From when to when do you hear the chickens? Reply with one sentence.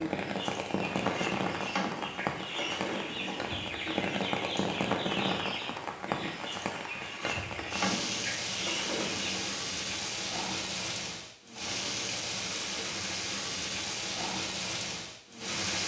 You can hear the chickens from 0.1 to 9.5 s.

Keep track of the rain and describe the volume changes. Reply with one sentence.
The volume of the rain stays about the same.